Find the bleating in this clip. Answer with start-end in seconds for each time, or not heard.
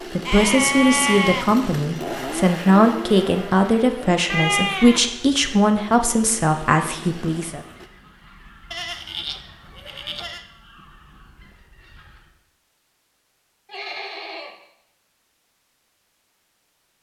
0.2-1.8, 4.3-5.5, 8.7-10.4, 13.7-14.6.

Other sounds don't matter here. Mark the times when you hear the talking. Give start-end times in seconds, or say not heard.
0.1-7.6.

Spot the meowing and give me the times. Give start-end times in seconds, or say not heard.
not heard.